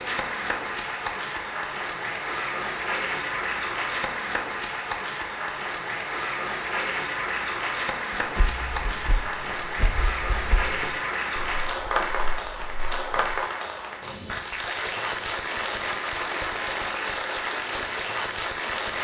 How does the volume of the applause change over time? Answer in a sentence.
The loudness of the applause stays about the same.